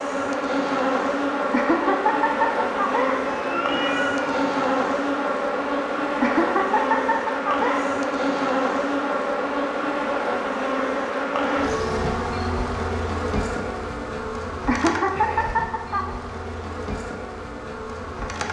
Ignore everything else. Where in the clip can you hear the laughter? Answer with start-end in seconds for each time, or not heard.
1.5-3.2, 6.2-8.0, 14.7-16.1.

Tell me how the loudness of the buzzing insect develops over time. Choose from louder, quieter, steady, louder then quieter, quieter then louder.
quieter.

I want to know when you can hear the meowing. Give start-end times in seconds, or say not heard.
3.2-4.9.